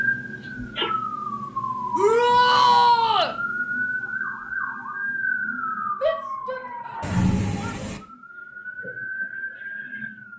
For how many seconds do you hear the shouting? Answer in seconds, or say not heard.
3 s.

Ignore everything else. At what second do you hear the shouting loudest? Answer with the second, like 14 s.
3 s.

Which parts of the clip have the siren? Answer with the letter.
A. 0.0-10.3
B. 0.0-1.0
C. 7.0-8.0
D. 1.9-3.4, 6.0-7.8
A.